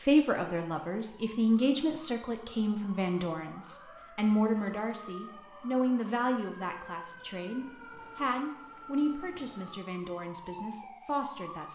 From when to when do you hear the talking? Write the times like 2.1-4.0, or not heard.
0.0-11.6.